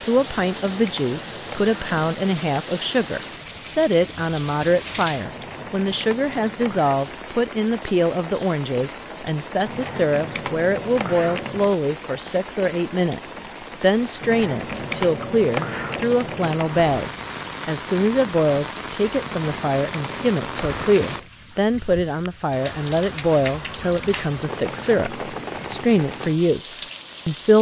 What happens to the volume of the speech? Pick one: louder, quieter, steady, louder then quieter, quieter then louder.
steady.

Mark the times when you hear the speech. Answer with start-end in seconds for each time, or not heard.
0.0-27.5.